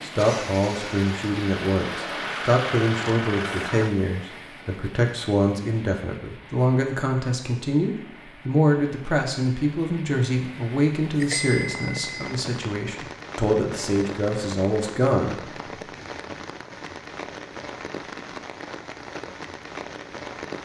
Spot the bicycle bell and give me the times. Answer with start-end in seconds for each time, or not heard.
11.2-12.3.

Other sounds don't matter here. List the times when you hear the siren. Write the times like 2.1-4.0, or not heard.
not heard.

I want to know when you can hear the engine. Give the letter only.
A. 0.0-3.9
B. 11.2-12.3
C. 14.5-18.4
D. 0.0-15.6
A.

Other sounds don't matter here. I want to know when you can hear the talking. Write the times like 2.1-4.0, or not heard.
0.0-15.6.